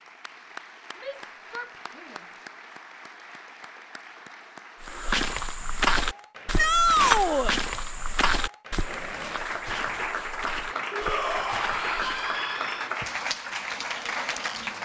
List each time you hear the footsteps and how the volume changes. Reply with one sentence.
You can hear the footsteps from 4.8 to 12.4 s, getting quieter.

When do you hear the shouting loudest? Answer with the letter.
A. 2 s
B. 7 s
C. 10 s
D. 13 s
B.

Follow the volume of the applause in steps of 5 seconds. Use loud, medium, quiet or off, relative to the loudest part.
quiet, medium, loud.